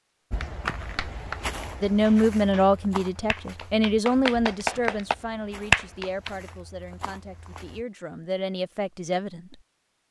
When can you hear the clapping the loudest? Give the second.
6 s.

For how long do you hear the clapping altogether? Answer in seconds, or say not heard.
6 s.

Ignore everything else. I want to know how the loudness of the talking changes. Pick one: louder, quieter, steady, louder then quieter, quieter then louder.
quieter then louder.